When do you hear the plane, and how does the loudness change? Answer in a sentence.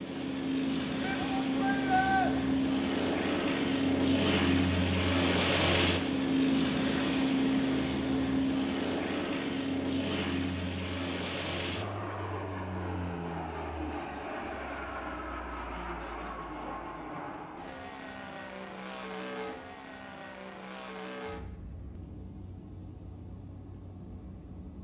You can hear the plane from 0.0 to 24.7 s, getting quieter.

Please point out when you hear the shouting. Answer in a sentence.
The shouting can be heard from 1.0 to 2.3 s.